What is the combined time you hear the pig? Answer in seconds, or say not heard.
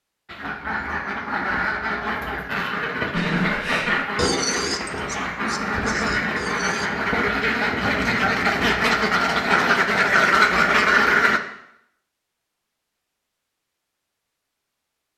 4 s.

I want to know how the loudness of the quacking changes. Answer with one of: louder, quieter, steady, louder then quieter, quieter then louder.
louder.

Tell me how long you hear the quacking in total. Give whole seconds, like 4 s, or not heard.
11 s.